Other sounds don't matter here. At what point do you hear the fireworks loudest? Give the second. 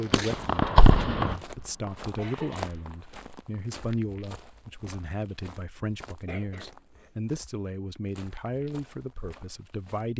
1 s.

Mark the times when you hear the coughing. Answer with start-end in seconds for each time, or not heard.
2.1-2.9, 6.2-7.1.